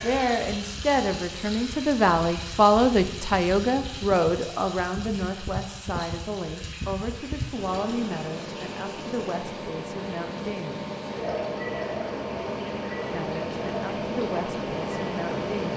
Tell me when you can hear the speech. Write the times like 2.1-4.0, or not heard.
0.0-10.8, 13.1-15.7.